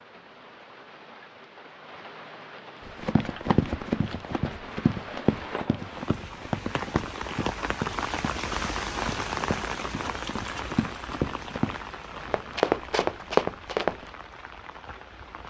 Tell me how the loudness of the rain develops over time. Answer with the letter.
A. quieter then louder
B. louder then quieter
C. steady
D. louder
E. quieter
B.